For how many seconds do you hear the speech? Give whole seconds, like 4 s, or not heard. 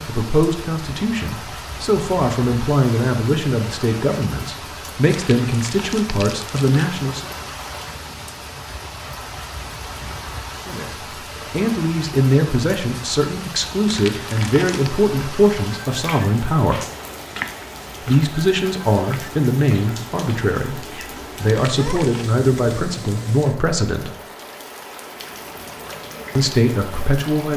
21 s.